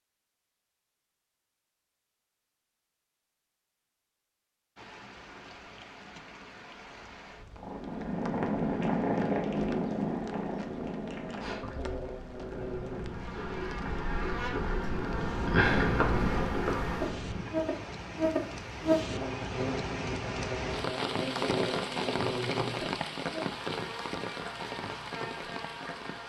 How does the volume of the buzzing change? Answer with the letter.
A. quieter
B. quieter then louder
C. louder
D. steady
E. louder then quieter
E.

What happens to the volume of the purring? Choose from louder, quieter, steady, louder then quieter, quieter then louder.
quieter then louder.